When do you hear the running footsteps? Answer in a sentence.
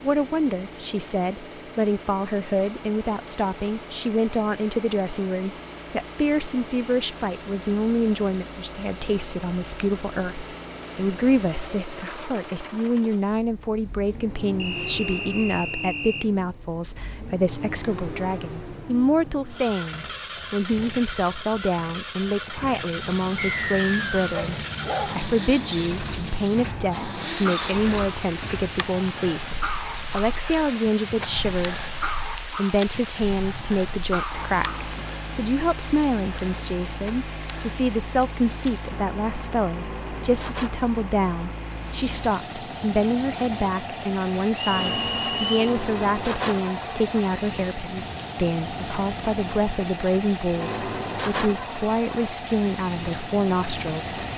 You can't hear the running footsteps here.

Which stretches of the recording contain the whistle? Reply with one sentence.
The whistle can be heard from 14.6 to 16.2 s, from 23.5 to 24.2 s and from 44.5 to 45.6 s.